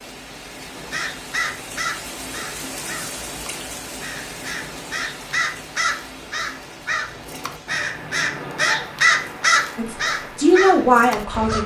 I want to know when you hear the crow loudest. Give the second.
9 s.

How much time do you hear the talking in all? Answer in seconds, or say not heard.
2 s.